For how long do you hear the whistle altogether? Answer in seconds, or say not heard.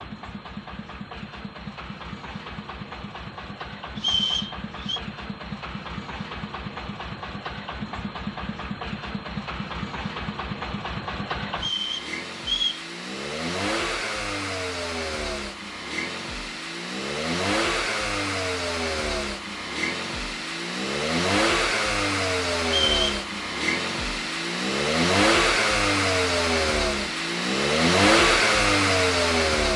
3 s.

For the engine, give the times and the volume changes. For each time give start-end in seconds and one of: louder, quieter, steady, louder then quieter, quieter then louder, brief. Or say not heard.
0.0-29.7 louder.